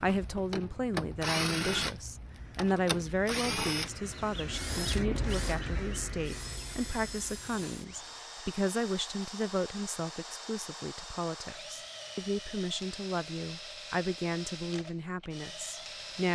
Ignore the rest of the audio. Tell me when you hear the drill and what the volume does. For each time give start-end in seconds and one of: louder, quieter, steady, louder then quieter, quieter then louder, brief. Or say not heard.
0.0-16.3 quieter.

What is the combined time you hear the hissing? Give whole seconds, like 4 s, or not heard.
6 s.